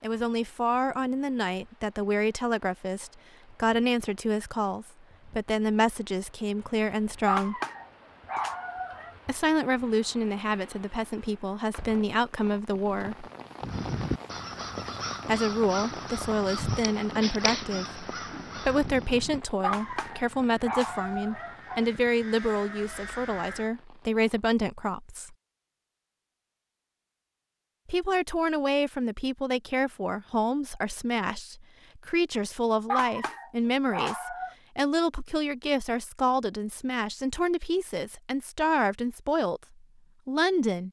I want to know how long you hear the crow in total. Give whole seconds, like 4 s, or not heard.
10 s.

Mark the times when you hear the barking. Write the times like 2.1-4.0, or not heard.
7.2-9.2, 19.6-21.9, 32.9-34.5.